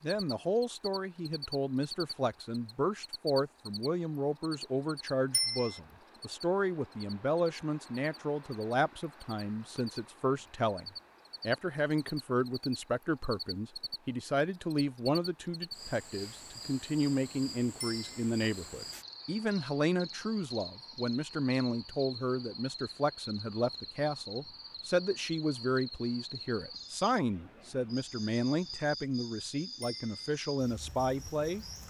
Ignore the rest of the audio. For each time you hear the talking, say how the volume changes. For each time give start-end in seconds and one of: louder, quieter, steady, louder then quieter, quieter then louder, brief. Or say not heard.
0.0-31.6 steady.